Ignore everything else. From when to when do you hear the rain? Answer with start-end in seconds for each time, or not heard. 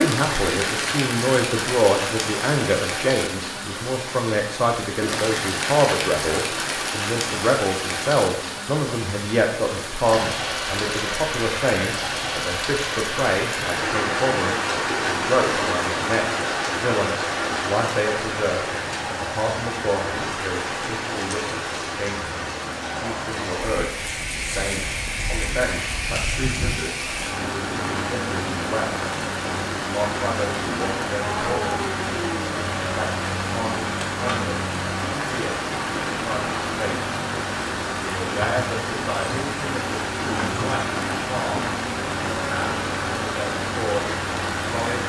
0.0-45.0.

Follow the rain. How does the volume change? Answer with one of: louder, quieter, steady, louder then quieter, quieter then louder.
steady.